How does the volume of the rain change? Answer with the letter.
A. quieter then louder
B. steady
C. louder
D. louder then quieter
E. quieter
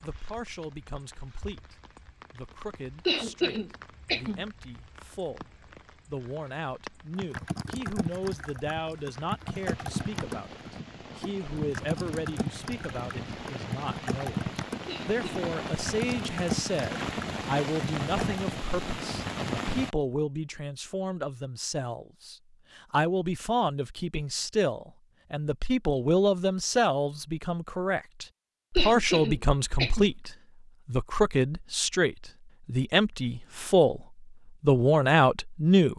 C.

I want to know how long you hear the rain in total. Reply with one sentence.
You can hear the rain for 20 seconds altogether.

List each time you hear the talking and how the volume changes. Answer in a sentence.
You can hear the talking from 0.0 to 35.9 s, getting louder.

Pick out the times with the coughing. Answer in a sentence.
The coughing can be heard from 3.0 to 4.5 s, from 14.8 to 15.5 s and from 28.8 to 30.1 s.